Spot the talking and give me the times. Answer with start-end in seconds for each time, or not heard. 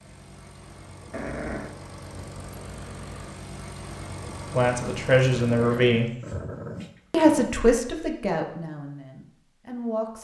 4.5-6.1, 7.1-10.1.